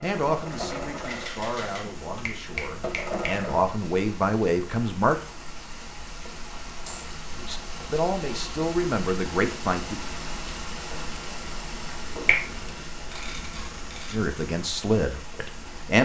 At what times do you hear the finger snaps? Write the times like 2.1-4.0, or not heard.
2.2-3.2, 12.2-12.8.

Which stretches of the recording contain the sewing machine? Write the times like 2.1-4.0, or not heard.
0.1-3.6.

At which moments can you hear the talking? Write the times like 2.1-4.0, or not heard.
0.0-5.2, 7.3-10.0, 14.1-15.9.